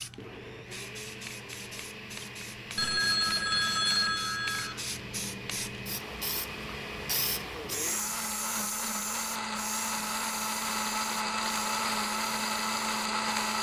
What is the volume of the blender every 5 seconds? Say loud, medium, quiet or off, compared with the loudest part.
quiet, medium, loud.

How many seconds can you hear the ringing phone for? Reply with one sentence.
The ringing phone can be heard for 2 seconds in total.